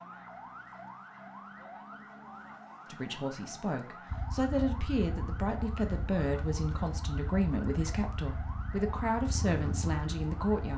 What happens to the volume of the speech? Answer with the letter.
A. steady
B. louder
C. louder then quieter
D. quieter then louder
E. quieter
A.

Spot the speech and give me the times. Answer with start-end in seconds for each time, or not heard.
2.9-10.7.